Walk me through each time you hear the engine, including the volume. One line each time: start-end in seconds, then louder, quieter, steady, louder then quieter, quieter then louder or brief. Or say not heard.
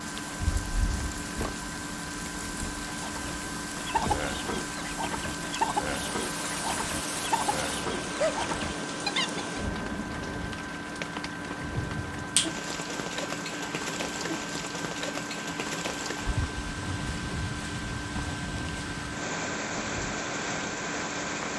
0.0-21.5 steady.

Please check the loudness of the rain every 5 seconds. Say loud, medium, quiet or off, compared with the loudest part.
medium, loud, loud, loud, loud.